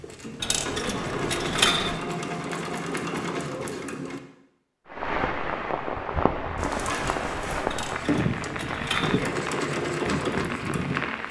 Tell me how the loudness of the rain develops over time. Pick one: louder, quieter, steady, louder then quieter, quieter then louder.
steady.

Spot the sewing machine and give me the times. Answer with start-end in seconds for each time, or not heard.
0.0-4.2, 6.5-11.2.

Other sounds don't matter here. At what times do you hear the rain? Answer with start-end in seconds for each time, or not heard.
4.8-11.2.